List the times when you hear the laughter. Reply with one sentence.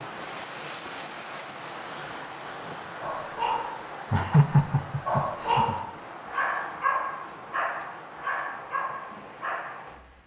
You can hear the laughter from 4.1 to 5.8 s.